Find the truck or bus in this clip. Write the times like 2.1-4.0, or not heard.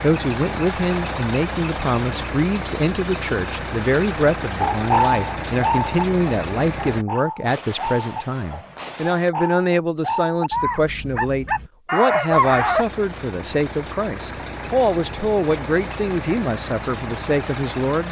0.0-7.0, 12.3-18.0.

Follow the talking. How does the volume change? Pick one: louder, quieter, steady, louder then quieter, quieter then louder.
steady.